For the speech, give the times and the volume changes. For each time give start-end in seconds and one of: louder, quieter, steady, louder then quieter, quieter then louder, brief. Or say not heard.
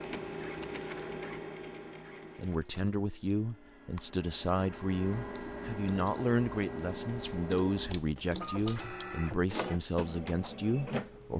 2.4-11.3 steady.